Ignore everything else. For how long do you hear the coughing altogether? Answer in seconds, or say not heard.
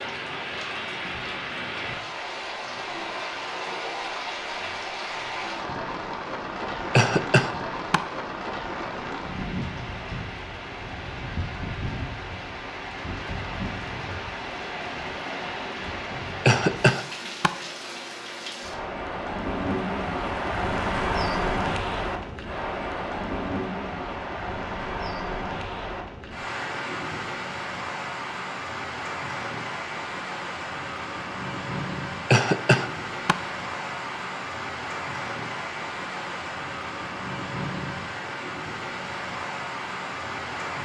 3 s.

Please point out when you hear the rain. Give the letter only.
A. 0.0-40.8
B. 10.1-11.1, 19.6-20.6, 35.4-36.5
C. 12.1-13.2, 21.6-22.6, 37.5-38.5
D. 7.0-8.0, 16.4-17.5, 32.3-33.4
A.